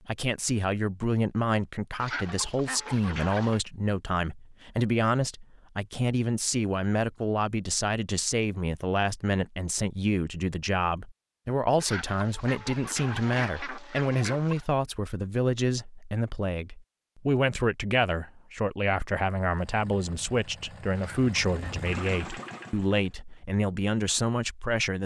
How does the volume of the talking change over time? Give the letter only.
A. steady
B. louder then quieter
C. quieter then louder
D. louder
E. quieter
A.